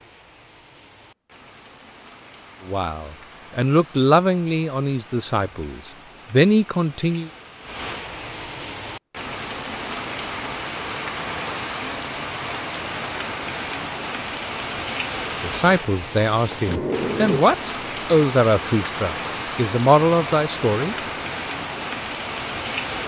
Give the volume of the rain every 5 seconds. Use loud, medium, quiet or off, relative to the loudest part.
quiet, medium, loud, loud, loud.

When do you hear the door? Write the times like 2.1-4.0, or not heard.
16.5-17.4.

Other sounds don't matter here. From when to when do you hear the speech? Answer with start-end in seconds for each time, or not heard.
2.6-7.3, 15.4-20.9.